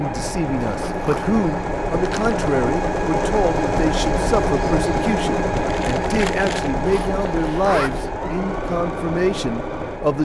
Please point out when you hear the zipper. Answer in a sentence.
The zipper can be heard from 0.6 to 1.3 s and from 6.8 to 8.1 s.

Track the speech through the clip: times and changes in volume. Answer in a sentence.
The speech can be heard from 0.0 to 10.1 s, at a steady volume.